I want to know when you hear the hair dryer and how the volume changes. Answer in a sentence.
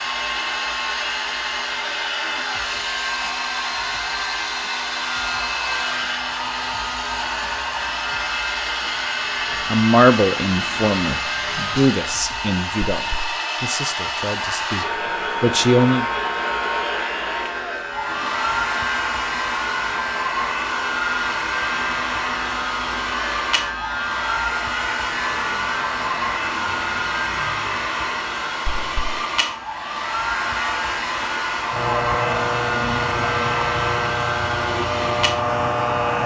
You can hear the hair dryer from 0.0 to 36.2 s, at a steady volume.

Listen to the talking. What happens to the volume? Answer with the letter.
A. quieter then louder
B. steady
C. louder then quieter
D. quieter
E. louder
A.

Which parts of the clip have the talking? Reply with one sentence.
The talking can be heard from 9.7 to 16.1 s.